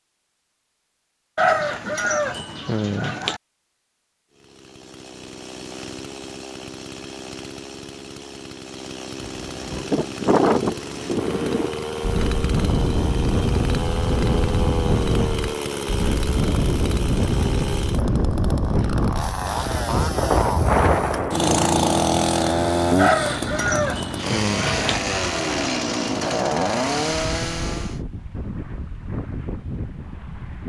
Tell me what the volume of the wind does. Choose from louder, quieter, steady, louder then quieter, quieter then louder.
quieter.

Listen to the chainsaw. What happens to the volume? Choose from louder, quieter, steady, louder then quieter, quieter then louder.
louder.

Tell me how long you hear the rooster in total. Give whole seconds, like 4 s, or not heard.
4 s.